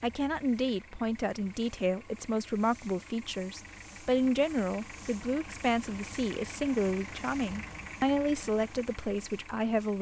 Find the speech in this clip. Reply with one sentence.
You can hear the speech from 0.0 to 9.9 s.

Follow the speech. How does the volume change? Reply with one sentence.
The loudness of the speech stays about the same.